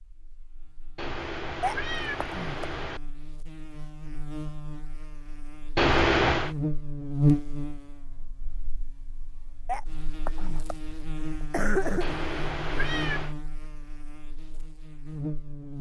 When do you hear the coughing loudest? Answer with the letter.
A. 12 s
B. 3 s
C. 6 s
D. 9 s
A.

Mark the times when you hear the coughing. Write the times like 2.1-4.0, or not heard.
1.6-2.7, 9.7-12.2.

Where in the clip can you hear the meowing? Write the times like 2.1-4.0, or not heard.
0.9-3.0, 5.8-6.5, 12.0-13.3.